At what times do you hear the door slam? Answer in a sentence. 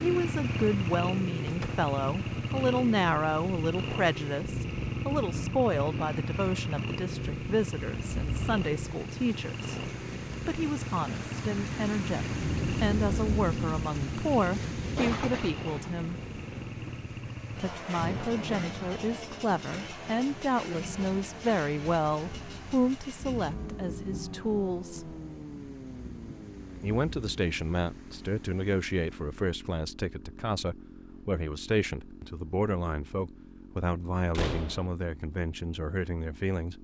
The door slam can be heard from 1.4 to 1.9 s and from 34.3 to 34.9 s.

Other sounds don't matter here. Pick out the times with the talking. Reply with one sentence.
You can hear the talking from 0.0 to 16.1 s, from 17.6 to 25.1 s and from 26.8 to 36.7 s.